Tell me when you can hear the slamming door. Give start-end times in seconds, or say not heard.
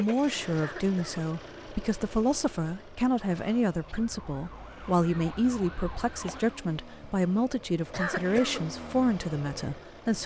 not heard.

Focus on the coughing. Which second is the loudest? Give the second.
8 s.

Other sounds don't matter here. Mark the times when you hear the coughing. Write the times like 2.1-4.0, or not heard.
0.6-1.2, 7.9-8.6.